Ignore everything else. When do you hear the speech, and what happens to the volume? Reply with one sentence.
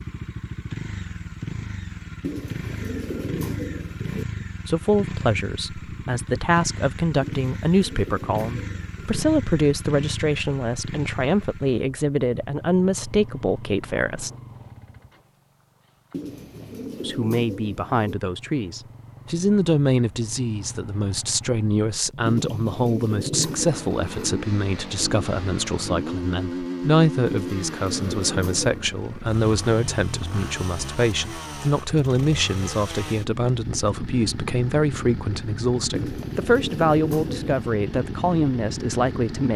The speech can be heard from 4.7 to 14.3 s, at a steady volume; and from 17.0 to 39.5 s, at a steady volume.